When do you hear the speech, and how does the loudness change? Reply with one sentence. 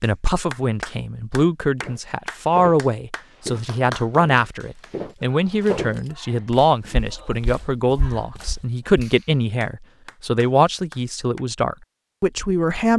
The speech can be heard from 0.0 to 12.9 s, at a steady volume.